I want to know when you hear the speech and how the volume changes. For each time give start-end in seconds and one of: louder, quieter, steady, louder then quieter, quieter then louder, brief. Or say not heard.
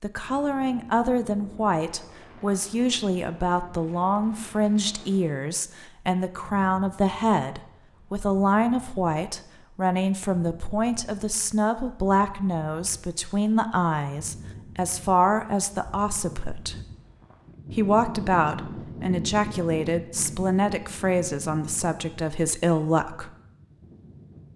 0.0-16.8 steady
17.7-23.3 steady.